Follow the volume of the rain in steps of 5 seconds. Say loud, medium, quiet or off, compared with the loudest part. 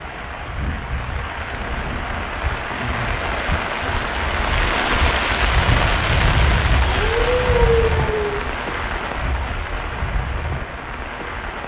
loud, loud, medium.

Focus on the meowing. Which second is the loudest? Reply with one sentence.
The volume of the meowing peaks at 8 seconds.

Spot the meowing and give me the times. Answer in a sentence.
You can hear the meowing from 1.5 to 2.4 s and from 6.8 to 8.4 s.